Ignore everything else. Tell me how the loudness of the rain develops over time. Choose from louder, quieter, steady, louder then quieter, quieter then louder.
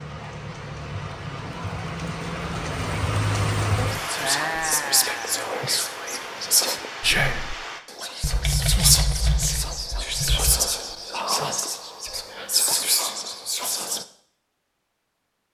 louder then quieter.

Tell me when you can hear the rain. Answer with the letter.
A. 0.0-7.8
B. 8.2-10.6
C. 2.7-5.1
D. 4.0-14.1
A.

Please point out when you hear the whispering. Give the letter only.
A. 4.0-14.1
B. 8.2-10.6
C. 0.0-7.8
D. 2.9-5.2
A.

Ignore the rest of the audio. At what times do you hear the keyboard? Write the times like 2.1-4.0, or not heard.
8.2-10.6.